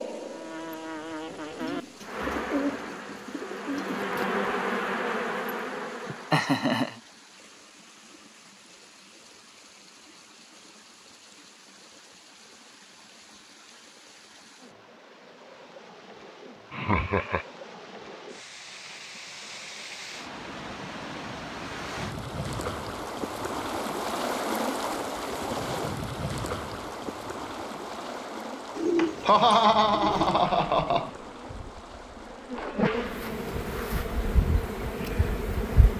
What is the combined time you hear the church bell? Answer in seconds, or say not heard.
not heard.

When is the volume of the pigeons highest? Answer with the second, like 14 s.
29 s.